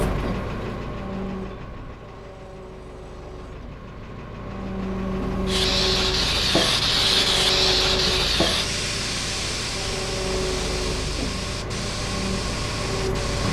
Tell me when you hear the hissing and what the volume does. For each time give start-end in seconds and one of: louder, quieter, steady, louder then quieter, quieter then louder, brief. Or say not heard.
5.5-13.4 quieter.